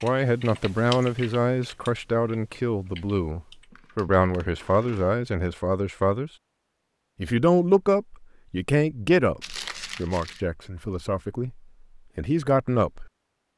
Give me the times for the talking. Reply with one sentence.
You can hear the talking from 0.0 to 6.3 s and from 7.2 to 13.1 s.